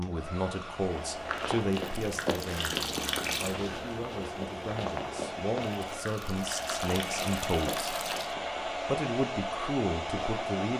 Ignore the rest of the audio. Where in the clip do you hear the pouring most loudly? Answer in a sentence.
The loudest moment of the pouring is at 3 seconds.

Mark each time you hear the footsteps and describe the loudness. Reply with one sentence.
The footsteps can be heard from 0.8 to 10.5 s, getting quieter.